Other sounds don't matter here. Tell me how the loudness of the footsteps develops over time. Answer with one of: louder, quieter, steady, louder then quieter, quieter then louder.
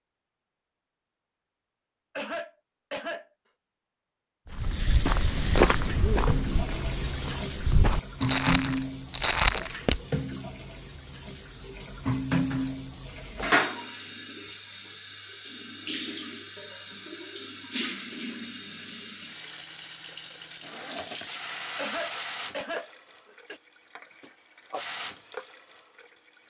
quieter then louder.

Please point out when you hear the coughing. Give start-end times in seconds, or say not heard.
2.1-3.2, 21.8-23.6.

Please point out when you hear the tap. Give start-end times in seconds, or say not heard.
4.5-26.4.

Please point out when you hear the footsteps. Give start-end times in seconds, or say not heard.
4.5-10.0.